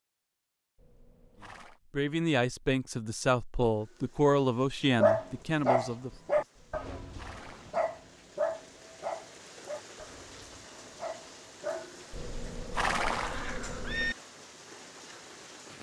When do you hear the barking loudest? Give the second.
5 s.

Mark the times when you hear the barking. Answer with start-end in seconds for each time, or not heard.
5.0-11.9.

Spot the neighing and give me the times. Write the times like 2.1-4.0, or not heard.
0.8-1.8, 6.5-7.8, 12.1-14.2.